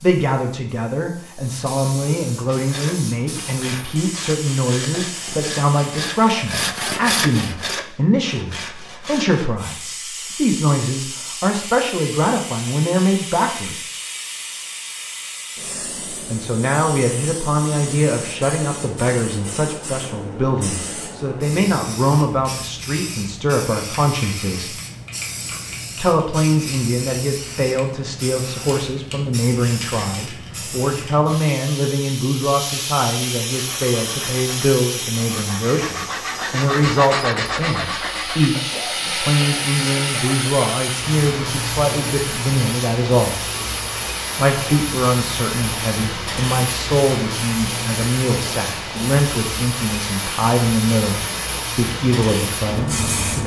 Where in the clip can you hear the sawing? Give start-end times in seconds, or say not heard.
2.5-9.5, 33.5-40.5.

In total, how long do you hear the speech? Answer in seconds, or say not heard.
49 s.